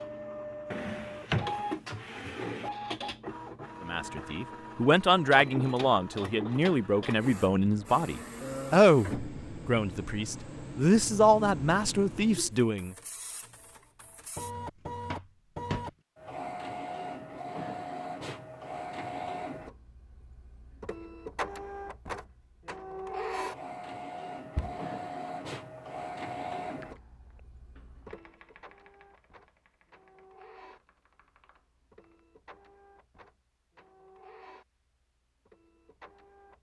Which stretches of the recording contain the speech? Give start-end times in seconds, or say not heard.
3.8-12.9.